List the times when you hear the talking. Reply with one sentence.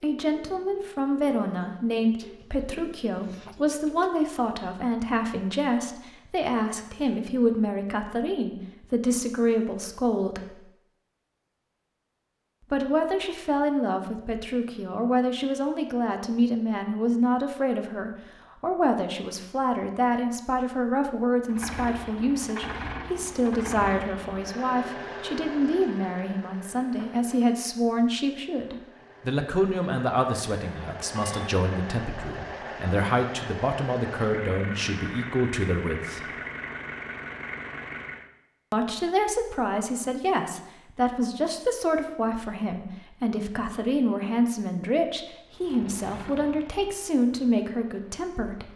You can hear the talking from 0.0 to 10.6 s, from 12.7 to 36.2 s and from 38.7 to 48.7 s.